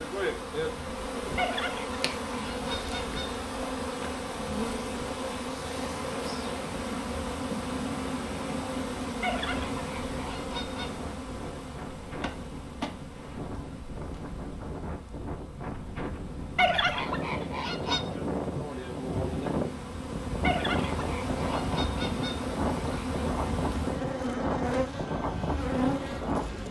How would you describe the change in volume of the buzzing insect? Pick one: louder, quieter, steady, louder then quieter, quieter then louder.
quieter then louder.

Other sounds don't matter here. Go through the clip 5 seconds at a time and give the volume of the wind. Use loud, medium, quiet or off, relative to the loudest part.
quiet, medium, medium, loud, loud, loud.